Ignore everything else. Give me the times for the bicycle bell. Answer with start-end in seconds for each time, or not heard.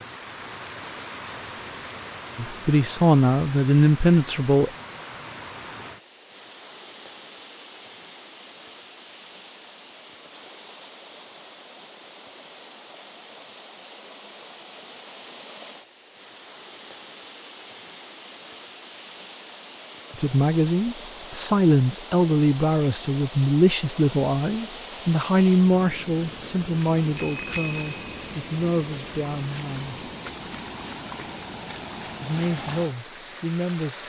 27.1-28.1.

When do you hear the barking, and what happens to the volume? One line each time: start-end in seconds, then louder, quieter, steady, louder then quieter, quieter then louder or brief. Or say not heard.
not heard.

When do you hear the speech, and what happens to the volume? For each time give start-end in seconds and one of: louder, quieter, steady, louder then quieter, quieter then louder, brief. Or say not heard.
2.4-4.7 brief
20.1-30.1 quieter
32.2-34.0 brief.